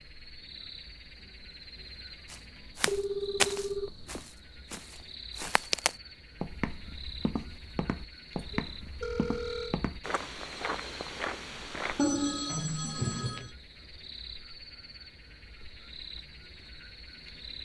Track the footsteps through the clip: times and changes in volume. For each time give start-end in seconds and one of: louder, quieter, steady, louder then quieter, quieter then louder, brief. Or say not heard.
2.3-12.1 quieter.